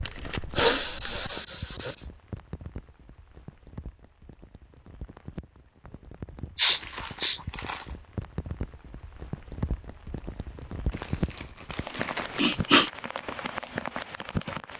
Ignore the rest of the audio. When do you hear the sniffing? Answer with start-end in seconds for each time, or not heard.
0.6-1.9, 6.5-7.4, 11.9-12.9.